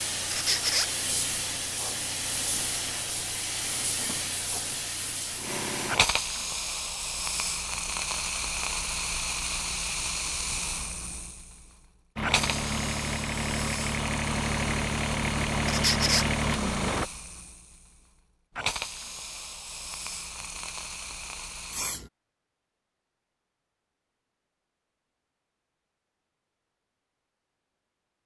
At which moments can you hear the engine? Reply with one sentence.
You can hear the engine from 12.2 to 17.1 s.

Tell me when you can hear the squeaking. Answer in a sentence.
You can hear the squeaking from 0.3 to 0.9 s and from 15.7 to 16.3 s.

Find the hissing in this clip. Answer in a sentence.
The hissing can be heard from 0.0 to 22.1 s.